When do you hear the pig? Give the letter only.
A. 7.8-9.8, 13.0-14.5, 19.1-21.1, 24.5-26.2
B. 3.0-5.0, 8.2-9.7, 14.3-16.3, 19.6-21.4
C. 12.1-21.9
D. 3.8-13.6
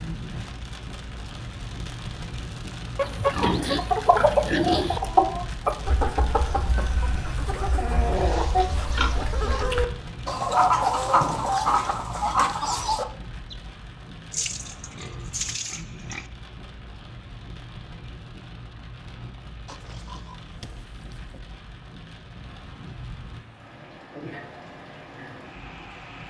B.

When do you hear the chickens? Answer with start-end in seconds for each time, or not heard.
3.8-13.6.